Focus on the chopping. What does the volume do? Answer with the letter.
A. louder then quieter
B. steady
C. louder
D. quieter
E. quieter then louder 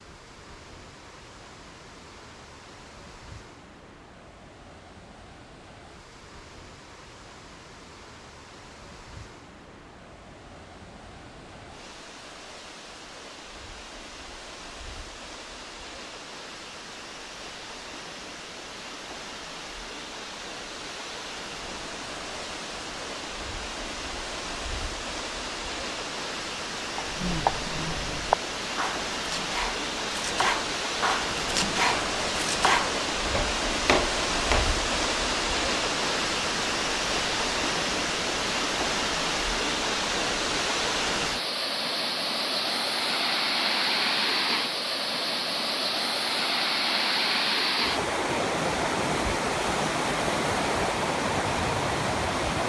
E.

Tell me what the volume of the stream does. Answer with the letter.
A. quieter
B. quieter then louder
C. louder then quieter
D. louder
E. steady
D.